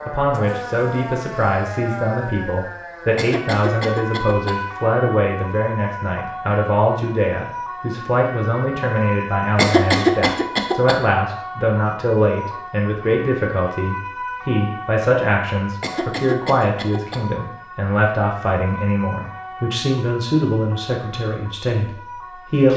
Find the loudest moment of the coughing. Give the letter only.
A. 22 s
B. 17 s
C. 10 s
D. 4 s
C.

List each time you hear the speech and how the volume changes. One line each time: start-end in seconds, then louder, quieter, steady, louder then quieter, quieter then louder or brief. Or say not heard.
0.1-22.7 steady.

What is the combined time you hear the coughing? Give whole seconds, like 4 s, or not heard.
4 s.